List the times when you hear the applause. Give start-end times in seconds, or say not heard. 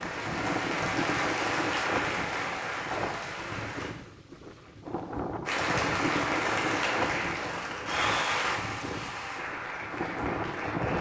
0.0-3.9, 5.5-10.9.